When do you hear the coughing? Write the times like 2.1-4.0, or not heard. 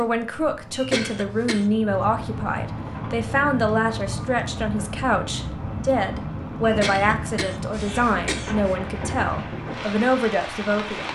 0.7-1.6, 6.6-8.8.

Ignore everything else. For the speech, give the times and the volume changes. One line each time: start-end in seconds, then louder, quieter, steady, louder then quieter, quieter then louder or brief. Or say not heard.
0.0-11.0 steady.